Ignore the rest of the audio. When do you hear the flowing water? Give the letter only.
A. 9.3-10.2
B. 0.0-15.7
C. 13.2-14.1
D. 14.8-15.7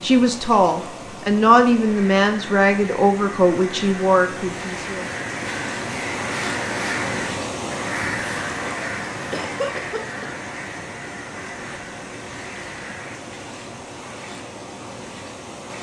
B.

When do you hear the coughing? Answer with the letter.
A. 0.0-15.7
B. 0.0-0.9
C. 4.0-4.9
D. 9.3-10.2
D.